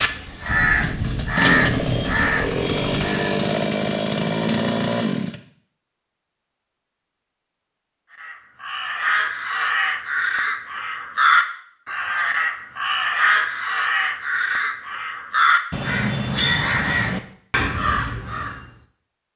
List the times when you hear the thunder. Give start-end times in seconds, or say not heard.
0.5-2.9.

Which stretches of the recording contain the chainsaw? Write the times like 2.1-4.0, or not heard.
0.0-5.4.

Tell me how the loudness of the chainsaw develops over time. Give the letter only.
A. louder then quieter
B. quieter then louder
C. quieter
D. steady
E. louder
E.